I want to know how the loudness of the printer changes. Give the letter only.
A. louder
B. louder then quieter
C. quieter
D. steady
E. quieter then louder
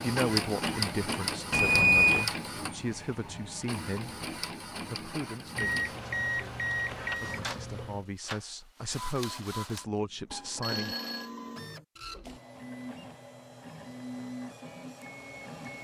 C.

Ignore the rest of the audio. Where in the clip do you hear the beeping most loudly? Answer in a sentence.
The volume of the beeping peaks at 2 seconds.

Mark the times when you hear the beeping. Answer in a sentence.
You can hear the beeping from 1.5 to 2.3 s, from 5.5 to 8.0 s and from 10.6 to 11.3 s.